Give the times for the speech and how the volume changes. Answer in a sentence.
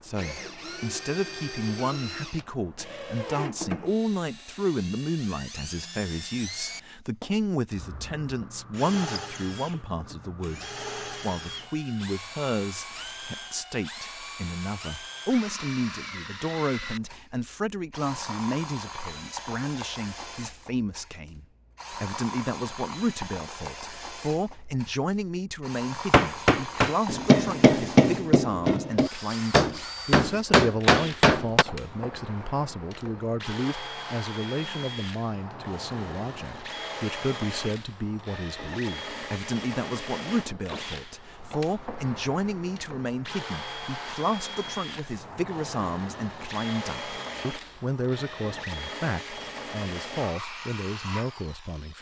The speech can be heard from 0.0 to 51.9 s, at a steady volume.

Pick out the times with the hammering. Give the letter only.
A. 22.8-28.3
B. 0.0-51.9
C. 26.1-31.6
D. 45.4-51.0
C.